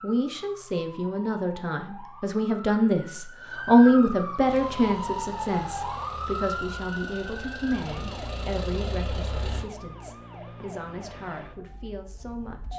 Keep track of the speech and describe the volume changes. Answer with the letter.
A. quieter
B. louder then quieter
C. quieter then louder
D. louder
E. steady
B.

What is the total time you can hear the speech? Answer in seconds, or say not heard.
13 s.